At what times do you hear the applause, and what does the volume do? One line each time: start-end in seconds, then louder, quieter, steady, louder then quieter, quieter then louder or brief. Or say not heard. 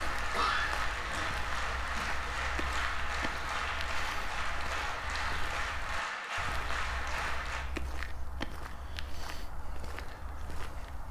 0.0-7.7 steady.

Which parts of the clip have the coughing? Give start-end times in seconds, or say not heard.
0.3-2.3.